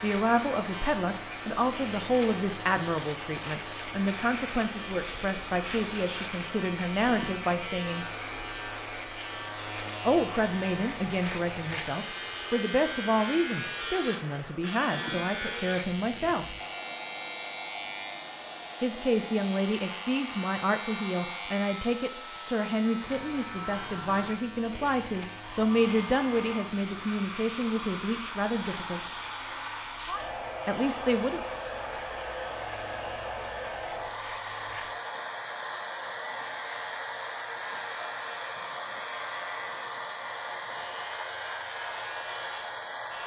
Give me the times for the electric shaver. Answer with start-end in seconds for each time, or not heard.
0.0-43.2.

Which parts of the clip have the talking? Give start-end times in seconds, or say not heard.
0.0-8.1, 10.1-16.6, 18.8-29.1, 30.6-31.4.